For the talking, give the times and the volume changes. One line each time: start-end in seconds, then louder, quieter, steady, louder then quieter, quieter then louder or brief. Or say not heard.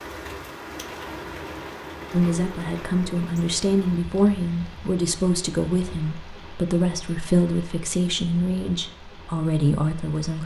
2.1-10.4 steady.